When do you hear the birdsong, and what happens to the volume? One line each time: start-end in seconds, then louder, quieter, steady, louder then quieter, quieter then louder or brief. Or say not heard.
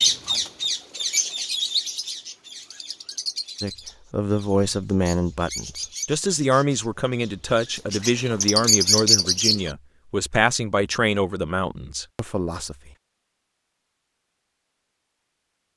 0.0-9.7 quieter then louder.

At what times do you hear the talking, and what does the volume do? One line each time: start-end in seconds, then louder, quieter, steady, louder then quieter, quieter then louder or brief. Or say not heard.
3.6-12.9 steady.